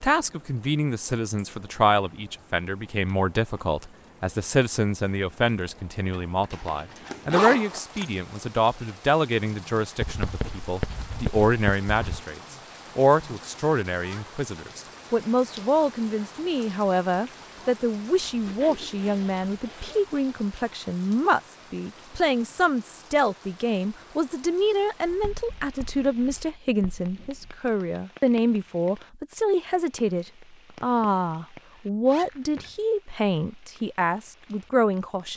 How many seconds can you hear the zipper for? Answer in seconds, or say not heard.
4 s.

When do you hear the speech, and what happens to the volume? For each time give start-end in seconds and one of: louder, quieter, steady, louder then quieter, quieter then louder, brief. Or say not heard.
0.0-35.3 steady.